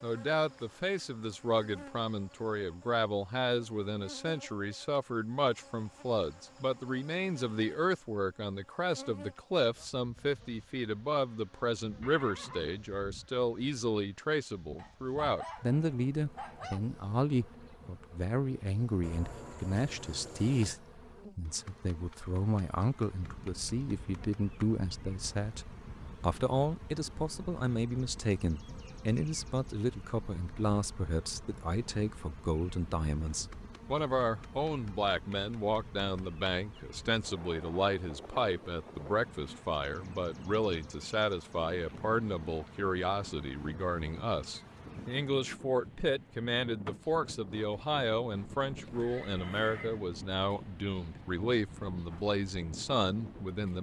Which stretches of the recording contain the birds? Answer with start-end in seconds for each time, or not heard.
not heard.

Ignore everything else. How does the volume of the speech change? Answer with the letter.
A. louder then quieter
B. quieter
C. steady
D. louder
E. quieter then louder
C.